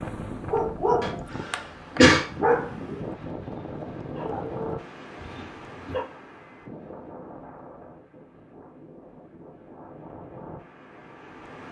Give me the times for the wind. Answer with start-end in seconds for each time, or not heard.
0.0-11.6.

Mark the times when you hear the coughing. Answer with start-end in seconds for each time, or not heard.
1.0-2.2.